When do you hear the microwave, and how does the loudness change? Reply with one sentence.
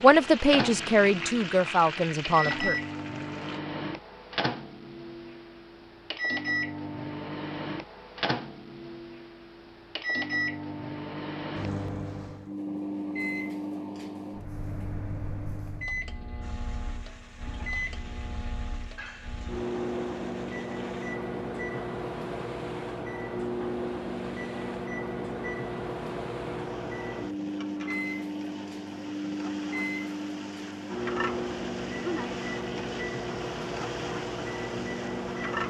You can hear the microwave from 0.0 to 35.6 s, at a steady volume.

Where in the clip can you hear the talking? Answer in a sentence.
You can hear the talking from 0.0 to 2.8 s.